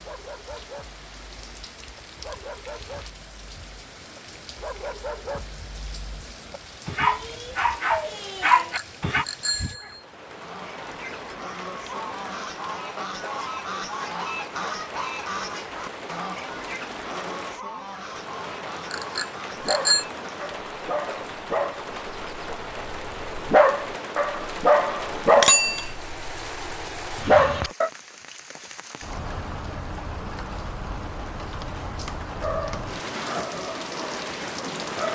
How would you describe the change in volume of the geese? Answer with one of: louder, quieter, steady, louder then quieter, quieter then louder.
louder then quieter.